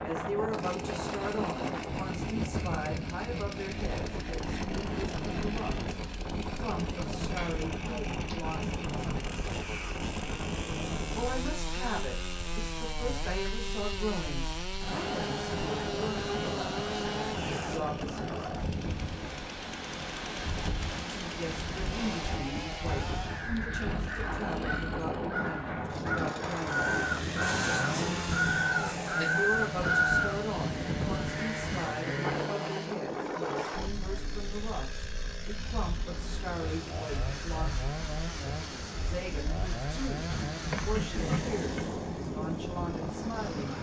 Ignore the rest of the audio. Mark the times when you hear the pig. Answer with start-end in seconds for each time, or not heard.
40.3-41.8.